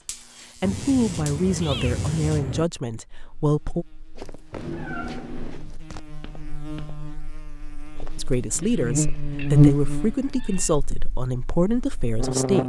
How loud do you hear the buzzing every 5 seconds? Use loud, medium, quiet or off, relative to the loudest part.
quiet, loud, medium.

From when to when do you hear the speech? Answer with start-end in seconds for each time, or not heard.
0.6-3.9, 8.2-12.6.